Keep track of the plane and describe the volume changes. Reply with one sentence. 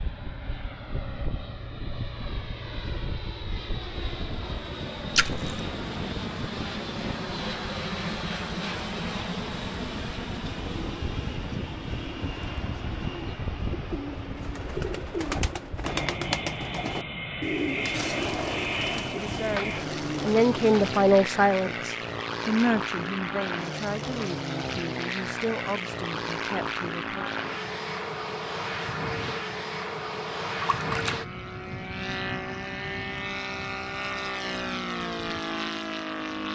The loudness of the plane stays about the same.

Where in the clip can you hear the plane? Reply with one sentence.
The plane can be heard from 0.0 to 36.4 s.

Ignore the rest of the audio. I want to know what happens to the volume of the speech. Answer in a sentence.
The loudness of the speech goes down.